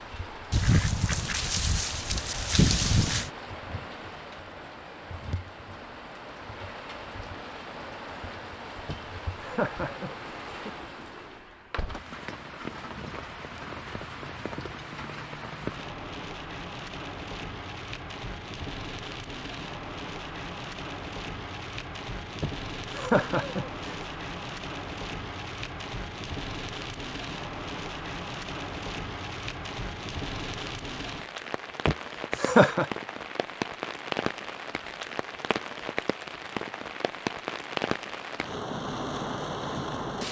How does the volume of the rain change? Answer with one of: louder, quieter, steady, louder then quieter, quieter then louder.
louder.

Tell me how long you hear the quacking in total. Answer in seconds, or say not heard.
3 s.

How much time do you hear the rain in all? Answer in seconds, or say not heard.
40 s.